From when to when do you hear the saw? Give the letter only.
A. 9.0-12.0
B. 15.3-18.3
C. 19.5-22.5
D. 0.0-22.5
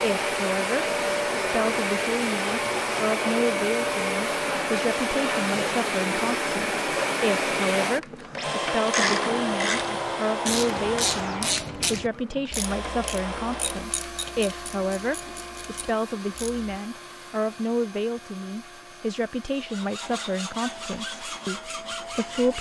C.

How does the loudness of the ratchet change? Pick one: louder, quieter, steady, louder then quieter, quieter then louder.
quieter.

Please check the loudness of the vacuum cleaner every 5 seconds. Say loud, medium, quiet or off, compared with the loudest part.
loud, loud, medium, quiet, quiet.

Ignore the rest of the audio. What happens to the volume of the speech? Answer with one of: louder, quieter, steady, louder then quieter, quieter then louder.
steady.